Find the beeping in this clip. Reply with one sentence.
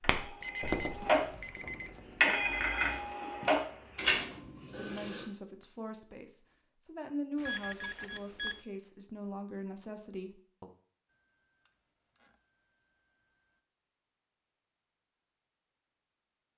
You can hear the beeping from 0.4 to 3.1 s, from 7.3 to 8.6 s and from 11.1 to 13.6 s.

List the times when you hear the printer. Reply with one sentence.
The printer can be heard from 0.0 to 1.3 s and from 2.2 to 5.2 s.